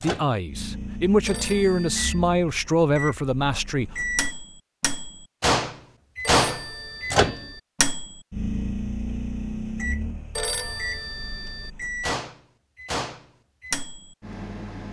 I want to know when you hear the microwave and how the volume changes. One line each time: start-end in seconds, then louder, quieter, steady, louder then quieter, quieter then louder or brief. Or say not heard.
0.0-14.8 louder then quieter.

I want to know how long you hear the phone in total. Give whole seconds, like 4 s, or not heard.
4 s.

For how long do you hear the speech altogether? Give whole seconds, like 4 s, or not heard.
4 s.